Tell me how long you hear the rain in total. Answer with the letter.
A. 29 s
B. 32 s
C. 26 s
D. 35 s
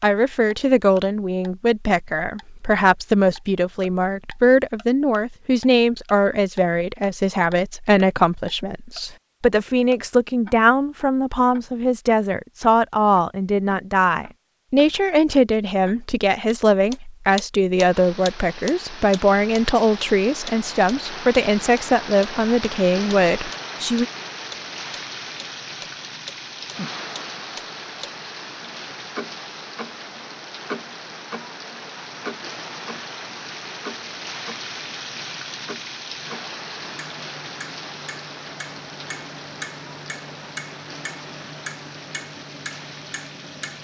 C.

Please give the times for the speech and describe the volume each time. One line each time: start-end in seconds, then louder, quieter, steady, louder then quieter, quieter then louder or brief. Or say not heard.
0.0-24.1 steady.